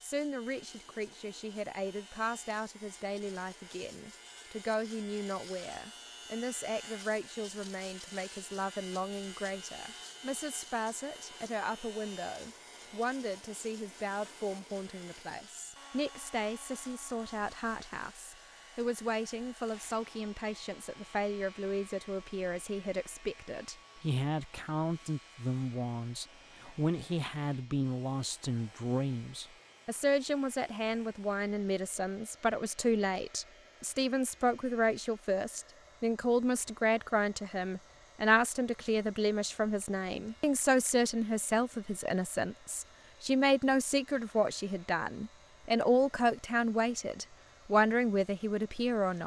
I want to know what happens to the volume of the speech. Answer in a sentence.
The loudness of the speech goes up.